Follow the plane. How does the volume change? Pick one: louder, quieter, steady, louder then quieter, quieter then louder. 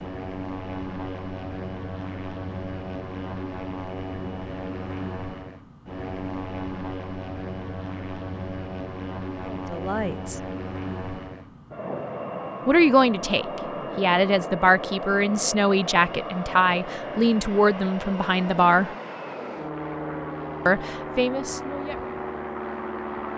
steady.